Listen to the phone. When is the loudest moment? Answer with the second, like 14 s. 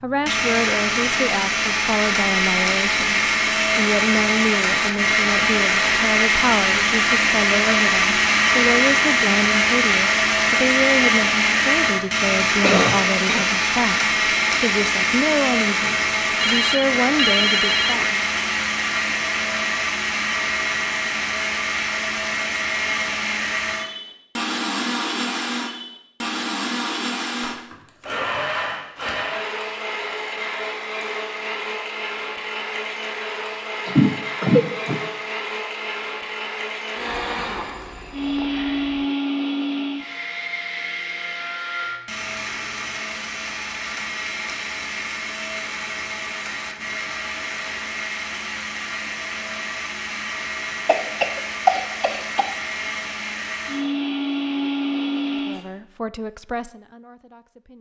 17 s.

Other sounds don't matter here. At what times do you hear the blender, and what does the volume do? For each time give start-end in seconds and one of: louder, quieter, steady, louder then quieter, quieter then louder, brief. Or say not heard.
0.0-55.6 quieter.